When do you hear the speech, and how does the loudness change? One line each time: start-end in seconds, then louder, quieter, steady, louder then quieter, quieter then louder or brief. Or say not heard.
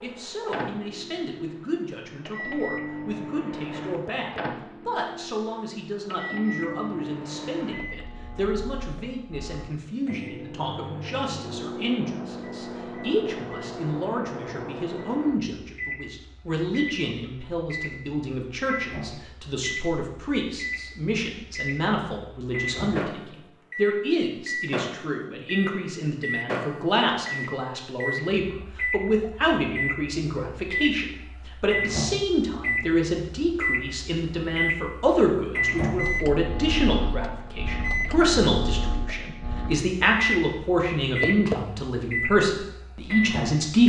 0.0-43.8 louder.